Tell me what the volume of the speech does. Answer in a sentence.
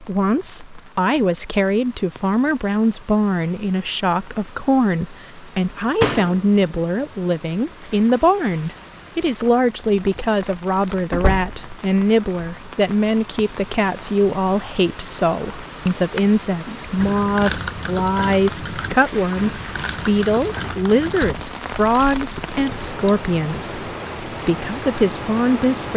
The volume of the speech stays about the same.